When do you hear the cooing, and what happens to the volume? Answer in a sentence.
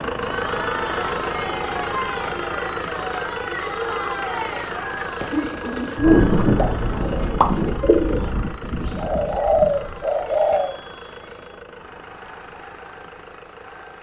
You can hear the cooing from 5.2 to 10.8 s, getting quieter then louder.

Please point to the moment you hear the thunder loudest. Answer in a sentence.
The volume of the thunder peaks at 6 seconds.